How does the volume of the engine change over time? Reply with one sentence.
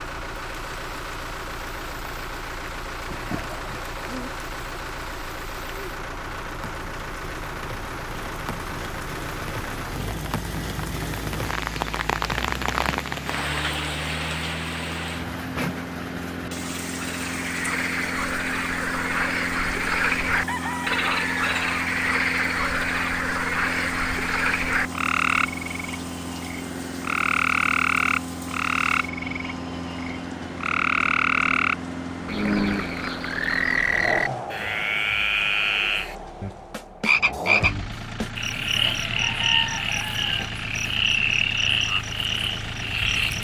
The volume of the engine stays about the same.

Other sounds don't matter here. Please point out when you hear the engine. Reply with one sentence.
The engine can be heard from 0.0 to 43.3 s.